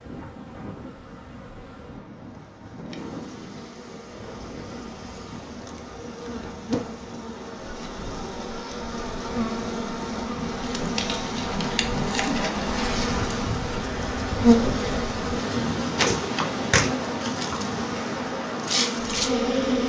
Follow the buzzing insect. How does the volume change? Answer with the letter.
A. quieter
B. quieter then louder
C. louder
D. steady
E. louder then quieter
C.